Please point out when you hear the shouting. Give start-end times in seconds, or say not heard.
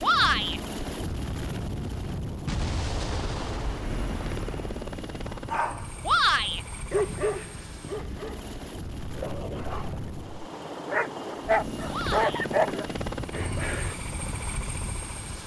0.0-0.6, 6.0-6.6, 11.9-12.4.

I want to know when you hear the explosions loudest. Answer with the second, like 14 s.
3 s.